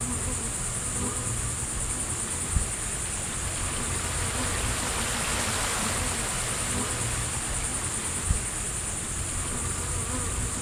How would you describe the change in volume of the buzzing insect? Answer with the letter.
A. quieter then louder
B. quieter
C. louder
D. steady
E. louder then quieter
D.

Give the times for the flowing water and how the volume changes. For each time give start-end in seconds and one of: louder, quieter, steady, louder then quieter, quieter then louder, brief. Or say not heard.
0.0-10.5 louder then quieter.